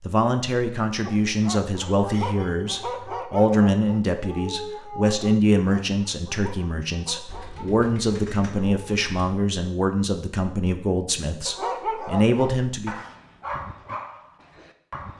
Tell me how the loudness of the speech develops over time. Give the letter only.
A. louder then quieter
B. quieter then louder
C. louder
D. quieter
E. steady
E.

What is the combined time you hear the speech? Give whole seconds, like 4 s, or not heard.
13 s.